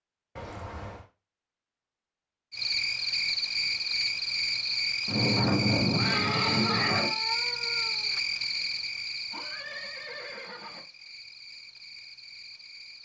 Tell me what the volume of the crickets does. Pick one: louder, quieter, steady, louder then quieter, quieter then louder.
quieter.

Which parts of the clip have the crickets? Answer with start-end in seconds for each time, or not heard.
2.5-13.0.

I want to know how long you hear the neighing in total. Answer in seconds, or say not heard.
4 s.